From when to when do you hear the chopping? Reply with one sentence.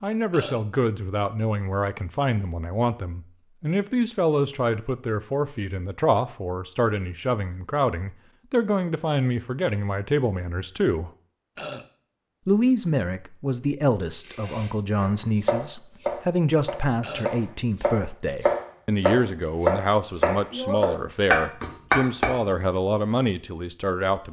You can hear the chopping from 14.3 to 22.3 s.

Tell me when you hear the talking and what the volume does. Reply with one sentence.
You can hear the talking from 0.0 to 11.1 s, at a steady volume; and from 12.4 to 24.2 s, at a steady volume.